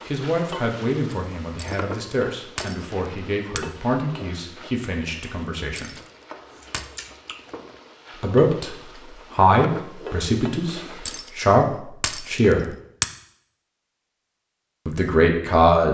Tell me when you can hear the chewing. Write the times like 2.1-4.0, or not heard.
6.0-7.8.